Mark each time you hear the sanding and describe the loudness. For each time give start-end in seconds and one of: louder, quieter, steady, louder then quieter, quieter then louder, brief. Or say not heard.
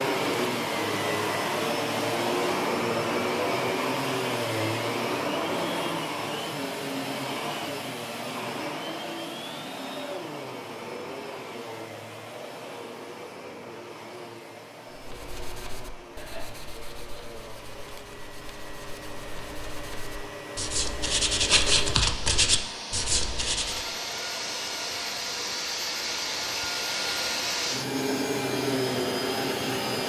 14.9-23.9 quieter then louder.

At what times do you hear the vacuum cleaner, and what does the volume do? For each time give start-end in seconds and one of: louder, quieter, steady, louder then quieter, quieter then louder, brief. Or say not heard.
0.0-30.0 quieter then louder.